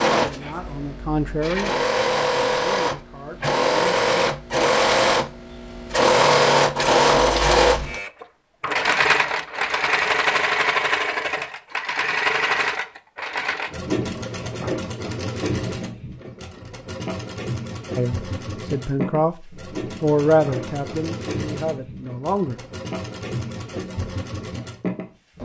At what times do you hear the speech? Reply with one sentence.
You can hear the speech from 0.1 to 4.0 s and from 17.9 to 22.6 s.